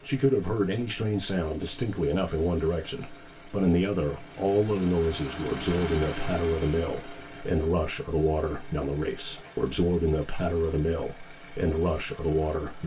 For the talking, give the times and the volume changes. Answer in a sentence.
The talking can be heard from 0.1 to 12.8 s, at a steady volume.